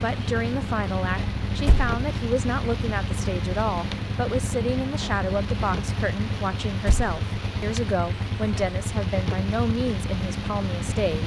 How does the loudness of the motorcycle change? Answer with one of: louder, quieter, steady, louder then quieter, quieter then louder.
steady.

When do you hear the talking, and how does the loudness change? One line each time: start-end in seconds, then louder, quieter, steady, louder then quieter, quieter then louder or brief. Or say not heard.
0.0-11.2 steady.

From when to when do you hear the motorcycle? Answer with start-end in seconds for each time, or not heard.
0.0-11.2.